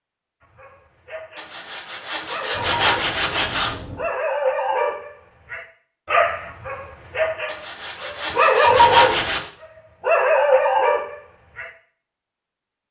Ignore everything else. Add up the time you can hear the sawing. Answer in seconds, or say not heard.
5 s.